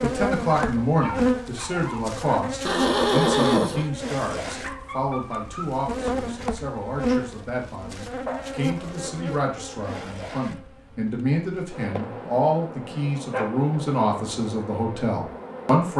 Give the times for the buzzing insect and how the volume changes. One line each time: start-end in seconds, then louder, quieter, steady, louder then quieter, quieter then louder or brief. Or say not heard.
0.0-15.9 quieter.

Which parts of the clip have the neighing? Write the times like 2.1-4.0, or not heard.
2.6-3.9.